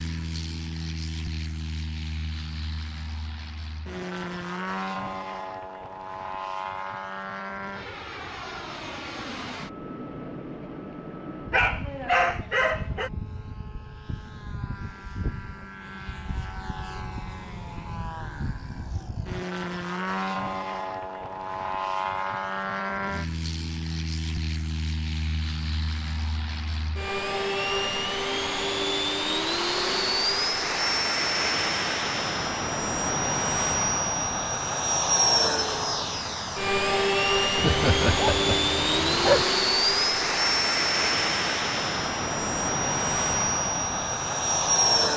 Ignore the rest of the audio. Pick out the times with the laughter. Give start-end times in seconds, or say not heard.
37.6-38.6.